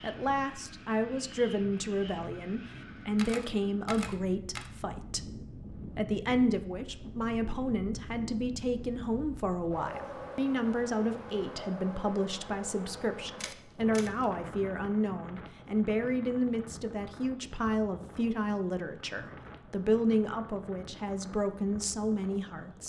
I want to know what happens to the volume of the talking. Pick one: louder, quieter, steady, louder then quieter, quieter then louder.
steady.